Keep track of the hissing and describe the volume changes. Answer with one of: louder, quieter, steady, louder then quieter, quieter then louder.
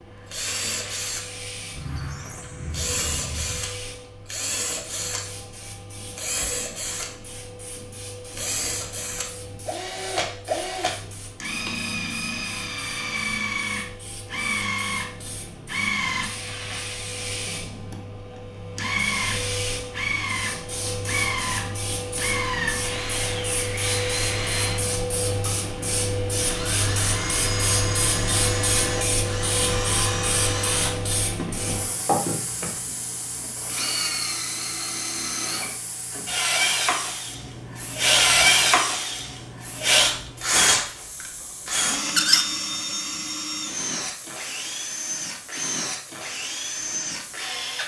louder then quieter.